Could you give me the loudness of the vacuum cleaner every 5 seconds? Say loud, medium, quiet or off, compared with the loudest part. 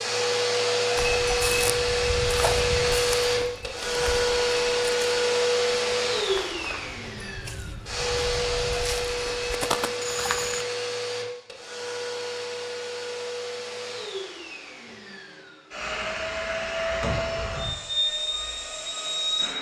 loud, loud, medium, medium.